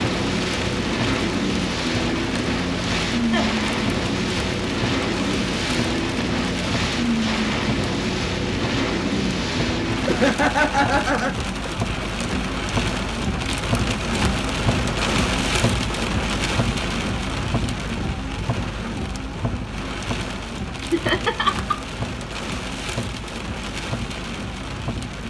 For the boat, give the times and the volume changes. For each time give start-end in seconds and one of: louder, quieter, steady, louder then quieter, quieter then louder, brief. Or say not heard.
0.0-10.3 steady.